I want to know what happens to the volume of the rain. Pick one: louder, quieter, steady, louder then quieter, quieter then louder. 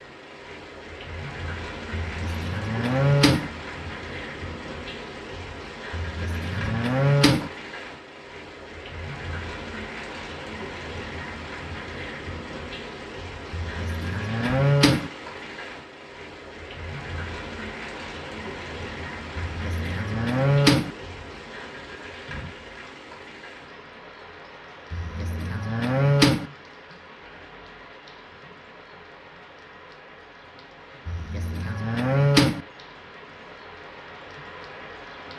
quieter.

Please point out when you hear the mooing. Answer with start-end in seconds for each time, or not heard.
1.9-3.5, 5.9-7.5, 13.5-15.1, 19.4-20.9, 24.9-26.4, 31.1-32.6.